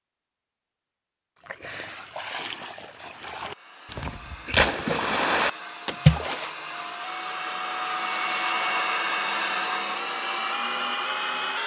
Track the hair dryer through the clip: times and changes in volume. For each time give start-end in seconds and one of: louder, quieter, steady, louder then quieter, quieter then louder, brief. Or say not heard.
3.4-11.6 louder.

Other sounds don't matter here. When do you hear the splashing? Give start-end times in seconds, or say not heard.
1.4-6.5.